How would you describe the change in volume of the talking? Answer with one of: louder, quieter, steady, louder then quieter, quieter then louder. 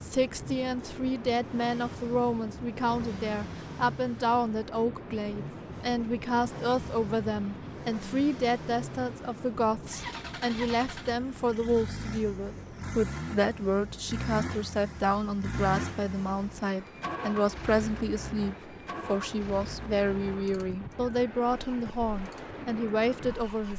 steady.